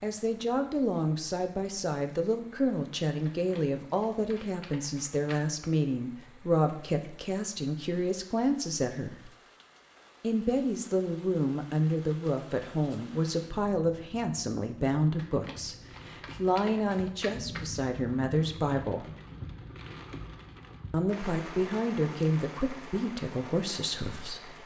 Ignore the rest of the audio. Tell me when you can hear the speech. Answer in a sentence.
The speech can be heard from 0.0 to 9.3 s, from 10.2 to 19.1 s and from 20.9 to 24.6 s.